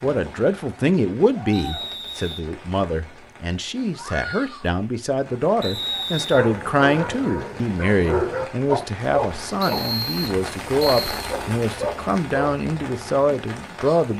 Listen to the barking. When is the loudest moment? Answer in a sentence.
The volume of the barking peaks at 8 seconds.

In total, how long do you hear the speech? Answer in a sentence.
The speech can be heard for 14 seconds in total.